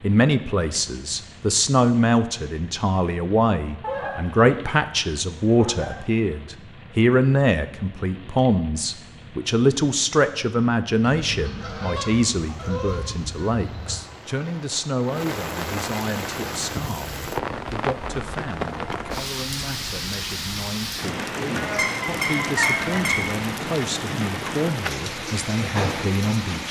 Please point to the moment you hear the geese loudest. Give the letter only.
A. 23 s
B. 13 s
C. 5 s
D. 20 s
A.